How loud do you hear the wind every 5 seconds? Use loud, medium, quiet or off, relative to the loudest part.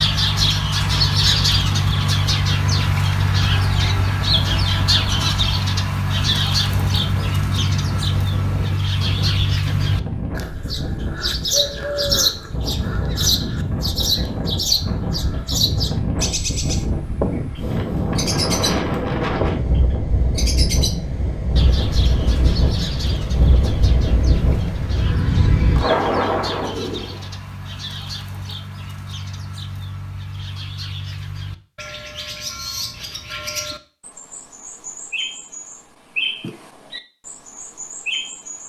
quiet, medium, medium, loud, loud, loud, off, off.